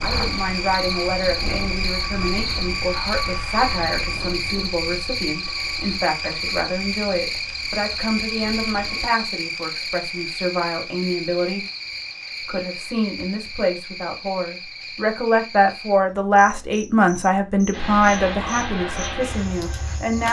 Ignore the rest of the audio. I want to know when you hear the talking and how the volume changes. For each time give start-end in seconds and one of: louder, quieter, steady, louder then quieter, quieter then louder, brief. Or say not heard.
0.0-11.7 steady
12.4-20.2 louder then quieter.